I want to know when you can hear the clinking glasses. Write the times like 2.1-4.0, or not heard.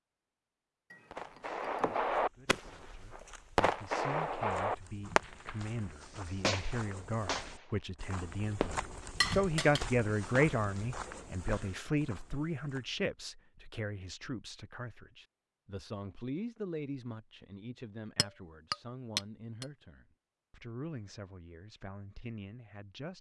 0.9-2.1, 9.2-9.9, 18.1-19.6.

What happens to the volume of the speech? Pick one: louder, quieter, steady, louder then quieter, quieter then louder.
louder then quieter.